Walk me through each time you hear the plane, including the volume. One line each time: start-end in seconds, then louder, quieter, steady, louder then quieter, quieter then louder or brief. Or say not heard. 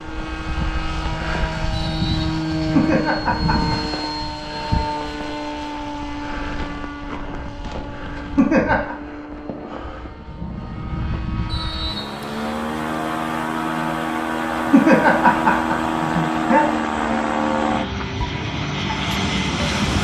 0.0-19.9 quieter then louder.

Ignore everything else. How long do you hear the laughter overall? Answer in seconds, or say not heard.
4 s.